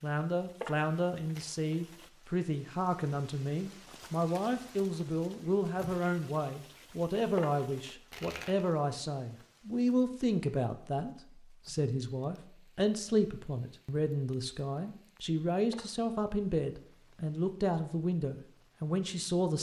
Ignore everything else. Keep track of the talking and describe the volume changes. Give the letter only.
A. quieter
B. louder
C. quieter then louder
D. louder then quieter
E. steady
E.